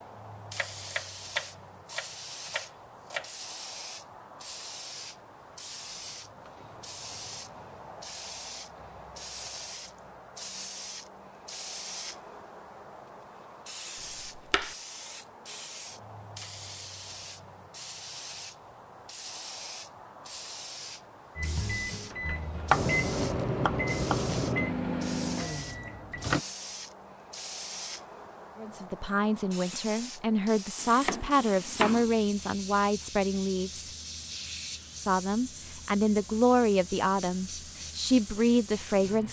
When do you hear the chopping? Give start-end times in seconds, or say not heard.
0.6-3.4, 14.0-14.8, 22.7-24.4, 30.8-32.1.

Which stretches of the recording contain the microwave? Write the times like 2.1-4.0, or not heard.
21.4-26.4.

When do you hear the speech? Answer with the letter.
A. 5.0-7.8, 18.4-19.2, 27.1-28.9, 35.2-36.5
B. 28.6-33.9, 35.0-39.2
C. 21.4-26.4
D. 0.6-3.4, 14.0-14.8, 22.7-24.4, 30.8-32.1
B.